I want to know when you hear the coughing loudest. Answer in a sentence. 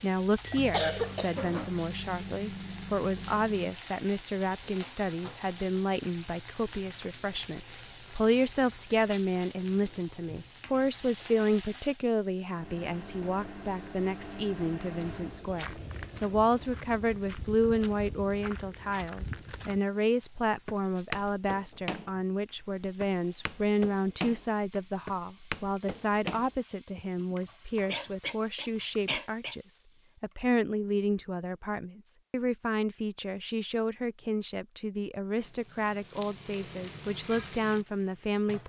The loudest moment of the coughing is at 1 second.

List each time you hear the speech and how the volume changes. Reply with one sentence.
The speech can be heard from 0.0 to 38.6 s, at a steady volume.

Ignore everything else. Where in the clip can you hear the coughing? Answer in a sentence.
You can hear the coughing from 0.5 to 1.4 s and from 27.3 to 29.6 s.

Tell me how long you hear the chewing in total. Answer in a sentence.
The chewing can't be heard in this clip.